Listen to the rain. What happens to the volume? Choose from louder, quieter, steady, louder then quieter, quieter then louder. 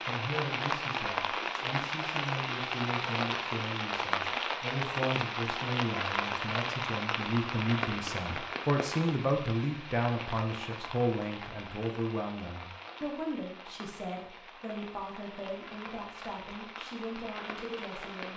quieter.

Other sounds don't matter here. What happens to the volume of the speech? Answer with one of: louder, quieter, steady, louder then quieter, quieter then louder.
louder then quieter.